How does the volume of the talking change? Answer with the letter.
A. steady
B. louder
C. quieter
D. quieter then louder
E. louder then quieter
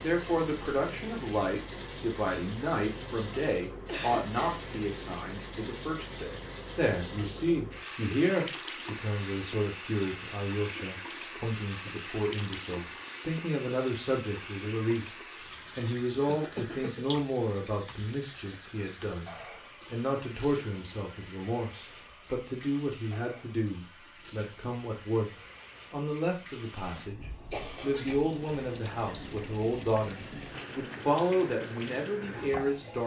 A.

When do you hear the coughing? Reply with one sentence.
The coughing can be heard from 3.9 to 4.5 s, from 15.6 to 17.1 s and from 27.5 to 28.1 s.